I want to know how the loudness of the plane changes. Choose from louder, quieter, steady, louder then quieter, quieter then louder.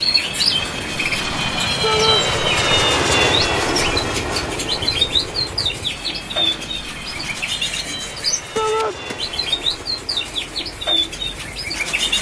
quieter.